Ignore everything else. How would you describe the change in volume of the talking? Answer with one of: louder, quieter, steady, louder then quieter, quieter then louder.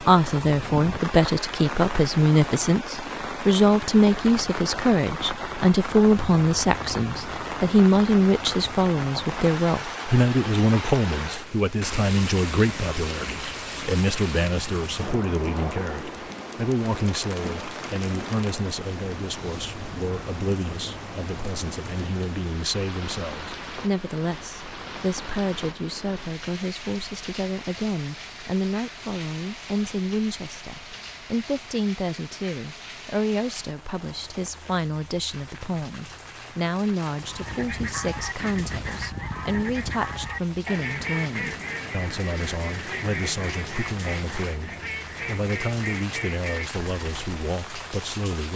quieter.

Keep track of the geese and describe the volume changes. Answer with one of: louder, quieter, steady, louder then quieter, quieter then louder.
steady.